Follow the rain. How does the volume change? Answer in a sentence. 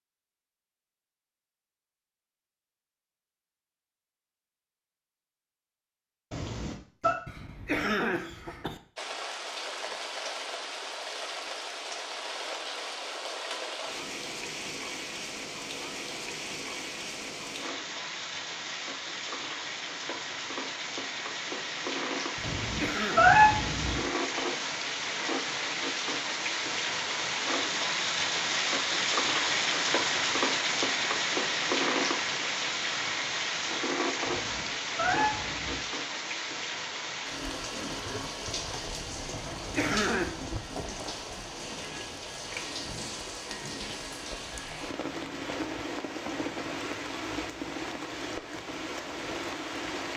The loudness of the rain goes up, then down.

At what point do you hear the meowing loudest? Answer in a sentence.
The volume of the meowing peaks at 23 seconds.